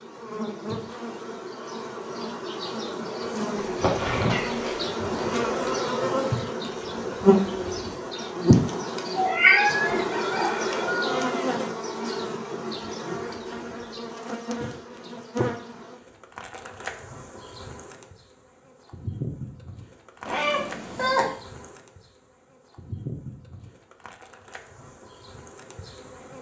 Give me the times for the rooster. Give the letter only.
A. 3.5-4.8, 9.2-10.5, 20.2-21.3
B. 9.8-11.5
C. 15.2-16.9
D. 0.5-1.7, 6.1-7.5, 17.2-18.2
B.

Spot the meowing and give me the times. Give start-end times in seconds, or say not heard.
3.5-4.8, 9.2-10.5, 20.2-21.3.